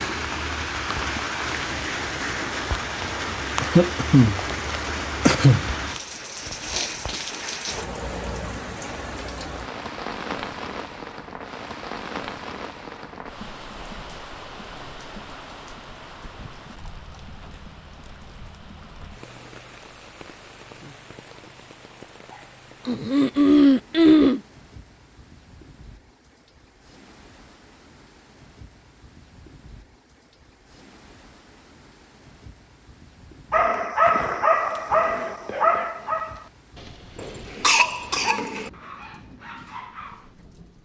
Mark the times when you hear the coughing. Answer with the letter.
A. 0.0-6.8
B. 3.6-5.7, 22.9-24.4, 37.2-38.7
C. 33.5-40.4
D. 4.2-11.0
B.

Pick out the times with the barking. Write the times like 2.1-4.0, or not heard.
33.5-40.4.